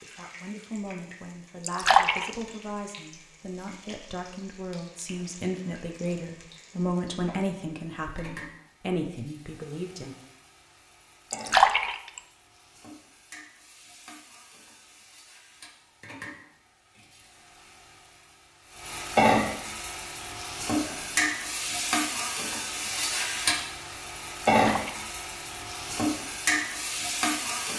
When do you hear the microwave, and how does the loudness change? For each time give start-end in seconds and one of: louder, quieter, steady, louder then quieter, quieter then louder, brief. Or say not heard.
not heard.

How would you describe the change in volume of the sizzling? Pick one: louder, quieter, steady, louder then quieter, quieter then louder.
louder.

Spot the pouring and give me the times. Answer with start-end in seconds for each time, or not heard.
1.6-2.3, 11.3-12.2, 24.6-25.1.